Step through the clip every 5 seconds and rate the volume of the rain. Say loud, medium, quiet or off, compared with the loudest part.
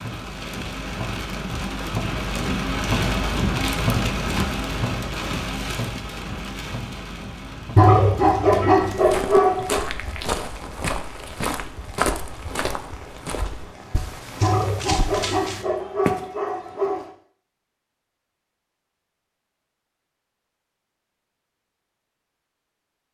loud, medium, quiet, off, off.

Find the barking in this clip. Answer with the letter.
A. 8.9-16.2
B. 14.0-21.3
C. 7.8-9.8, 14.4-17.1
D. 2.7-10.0
C.